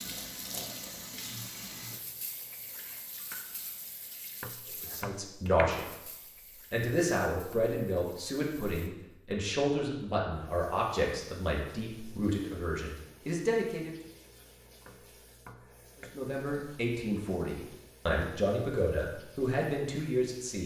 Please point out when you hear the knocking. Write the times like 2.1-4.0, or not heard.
4.4-5.8, 14.8-16.1.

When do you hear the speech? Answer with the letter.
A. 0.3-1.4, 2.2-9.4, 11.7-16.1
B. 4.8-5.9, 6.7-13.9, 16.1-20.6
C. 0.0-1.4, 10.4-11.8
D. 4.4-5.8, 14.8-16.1
B.